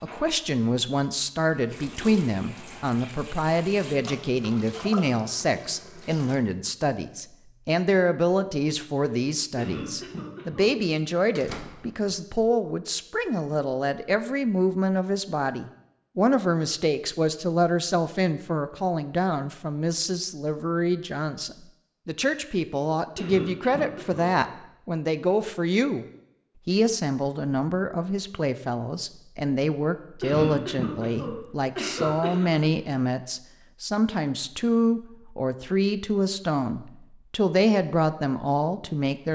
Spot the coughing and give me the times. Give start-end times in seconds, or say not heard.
9.6-10.7, 23.1-24.3, 30.2-32.6.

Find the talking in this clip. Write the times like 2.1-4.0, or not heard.
0.0-26.1, 26.6-39.3.